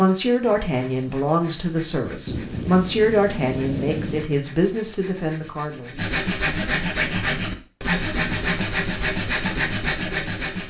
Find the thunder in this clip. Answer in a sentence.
The thunder can be heard from 2.2 to 4.3 s.